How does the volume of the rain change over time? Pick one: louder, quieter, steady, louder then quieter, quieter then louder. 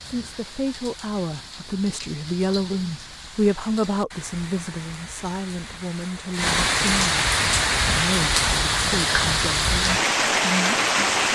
louder.